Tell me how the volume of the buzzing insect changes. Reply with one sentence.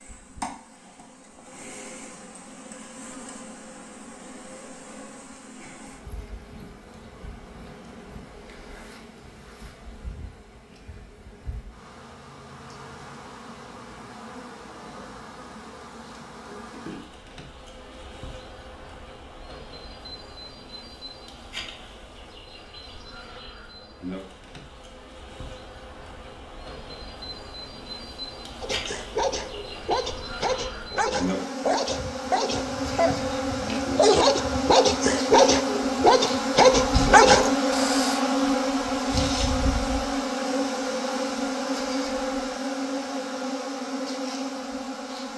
The loudness of the buzzing insect goes up.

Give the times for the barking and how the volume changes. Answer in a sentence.
The barking can be heard from 28.6 to 38.2 s, getting louder.